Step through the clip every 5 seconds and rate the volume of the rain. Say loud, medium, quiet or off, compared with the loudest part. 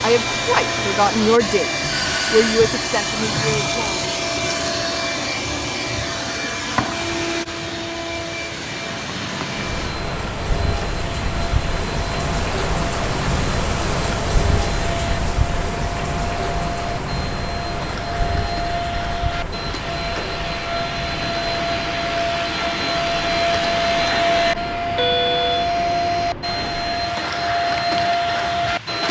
off, medium, loud, loud, medium, medium.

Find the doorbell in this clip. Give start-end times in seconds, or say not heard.
1.9-2.6, 24.9-25.7.